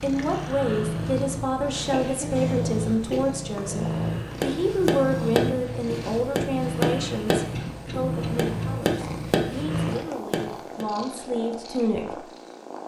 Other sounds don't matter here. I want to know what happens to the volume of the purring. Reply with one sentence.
The volume of the purring goes down.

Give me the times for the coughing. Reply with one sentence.
You can hear the coughing from 1.9 to 3.2 s and from 7.5 to 8.7 s.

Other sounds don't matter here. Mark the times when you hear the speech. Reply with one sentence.
The speech can be heard from 0.0 to 12.2 s.